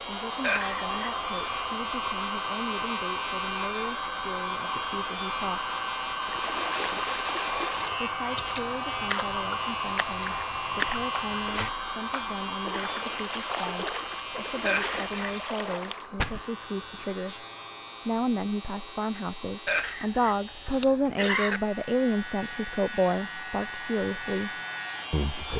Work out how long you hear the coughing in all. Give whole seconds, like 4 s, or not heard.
4 s.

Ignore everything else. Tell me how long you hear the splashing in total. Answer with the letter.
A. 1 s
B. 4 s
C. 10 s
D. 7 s
C.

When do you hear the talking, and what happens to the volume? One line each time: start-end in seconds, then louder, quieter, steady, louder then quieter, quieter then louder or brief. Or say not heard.
0.1-5.7 steady
8.0-17.4 steady
18.1-25.5 louder then quieter.